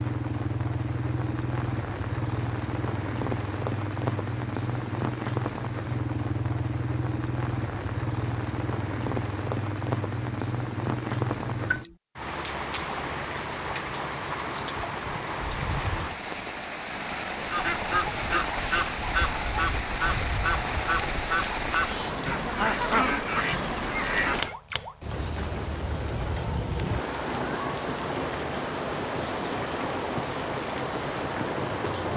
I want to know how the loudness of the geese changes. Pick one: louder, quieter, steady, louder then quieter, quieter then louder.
steady.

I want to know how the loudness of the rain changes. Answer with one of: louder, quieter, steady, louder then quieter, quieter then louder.
steady.